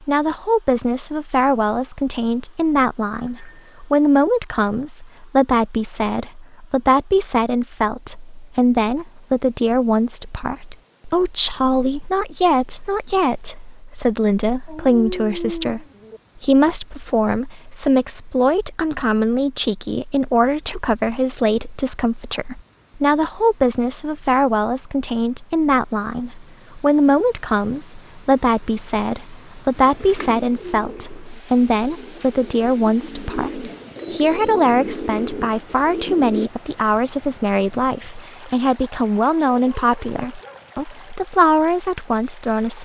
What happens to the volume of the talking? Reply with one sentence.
The volume of the talking stays about the same.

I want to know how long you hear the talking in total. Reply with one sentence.
You can hear the talking for 43 seconds altogether.